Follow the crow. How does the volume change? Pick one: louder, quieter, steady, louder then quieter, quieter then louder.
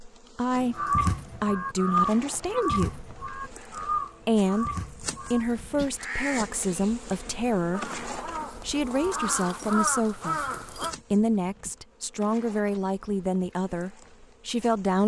quieter then louder.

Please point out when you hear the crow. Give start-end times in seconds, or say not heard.
0.6-10.9.